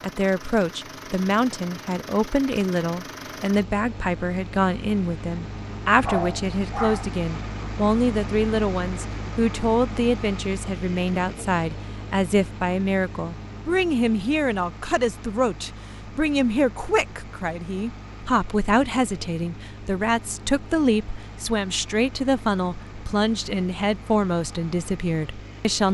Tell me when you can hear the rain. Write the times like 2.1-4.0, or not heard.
not heard.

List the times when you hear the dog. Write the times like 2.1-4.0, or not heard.
6.0-7.2.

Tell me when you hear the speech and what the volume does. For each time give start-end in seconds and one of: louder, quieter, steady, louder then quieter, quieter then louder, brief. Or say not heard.
0.0-25.8 steady.